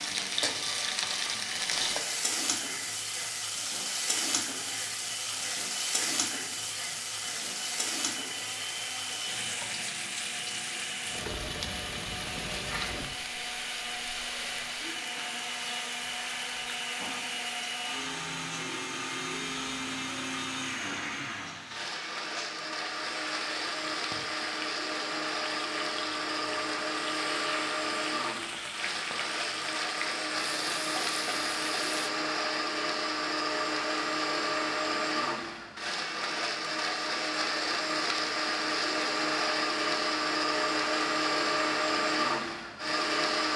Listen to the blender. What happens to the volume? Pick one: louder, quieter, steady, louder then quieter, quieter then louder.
louder.